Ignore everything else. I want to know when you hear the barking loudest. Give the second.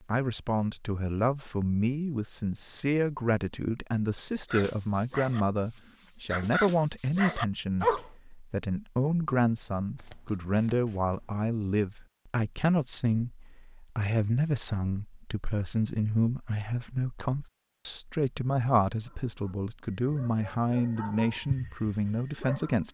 8 s.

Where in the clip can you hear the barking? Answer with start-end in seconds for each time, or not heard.
4.5-8.1, 19.0-22.8.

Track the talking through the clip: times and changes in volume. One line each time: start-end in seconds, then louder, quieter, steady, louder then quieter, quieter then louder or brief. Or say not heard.
0.1-22.8 steady.